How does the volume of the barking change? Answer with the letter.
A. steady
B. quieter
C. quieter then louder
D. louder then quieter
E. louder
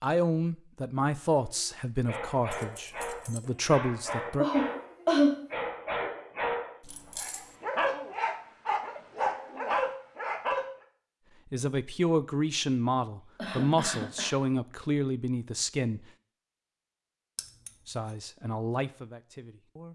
E.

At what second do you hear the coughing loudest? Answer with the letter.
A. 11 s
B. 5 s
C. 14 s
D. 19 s
B.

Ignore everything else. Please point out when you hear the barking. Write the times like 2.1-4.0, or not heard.
1.2-10.7.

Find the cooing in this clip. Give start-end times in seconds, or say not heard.
not heard.